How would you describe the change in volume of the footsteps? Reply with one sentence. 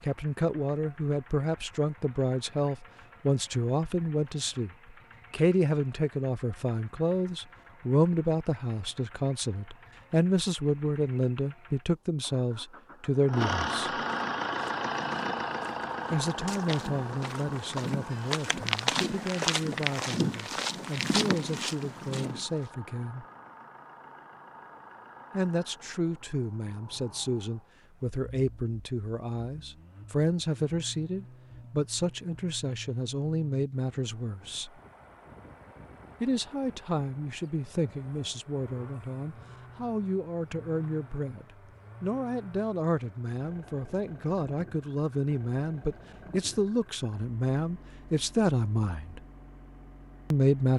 The volume of the footsteps goes up.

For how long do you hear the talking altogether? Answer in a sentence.
You can hear the talking for 44 seconds altogether.